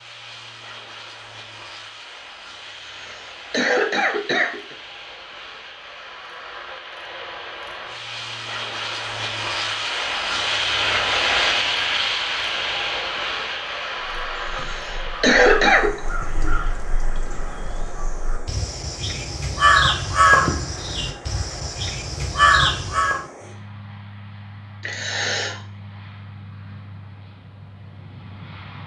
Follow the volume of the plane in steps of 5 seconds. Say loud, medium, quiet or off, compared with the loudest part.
quiet, medium, loud, quiet, quiet, quiet.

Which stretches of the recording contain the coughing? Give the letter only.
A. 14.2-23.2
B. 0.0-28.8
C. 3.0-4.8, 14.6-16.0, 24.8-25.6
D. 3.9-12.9
C.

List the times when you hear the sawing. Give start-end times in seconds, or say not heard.
not heard.